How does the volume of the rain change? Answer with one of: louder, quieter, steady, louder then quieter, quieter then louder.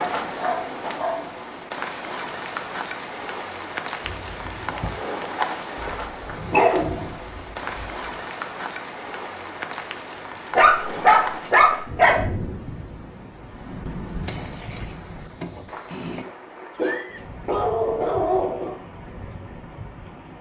quieter.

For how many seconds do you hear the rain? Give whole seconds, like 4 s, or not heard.
20 s.